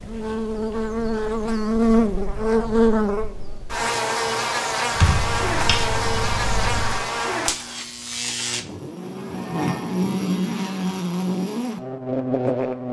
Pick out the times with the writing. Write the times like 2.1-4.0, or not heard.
not heard.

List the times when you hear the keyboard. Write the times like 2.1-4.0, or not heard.
4.9-7.0.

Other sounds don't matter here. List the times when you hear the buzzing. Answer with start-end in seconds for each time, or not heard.
0.0-12.8.